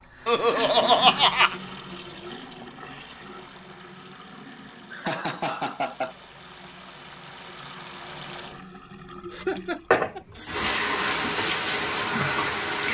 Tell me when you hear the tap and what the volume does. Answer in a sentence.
The tap can be heard from 0.0 to 12.8 s, getting quieter then louder.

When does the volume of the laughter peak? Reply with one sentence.
The loudest moment of the laughter is at 1 second.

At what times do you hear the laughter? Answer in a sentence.
You can hear the laughter from 0.2 to 1.6 s, from 4.9 to 6.2 s and from 9.3 to 10.2 s.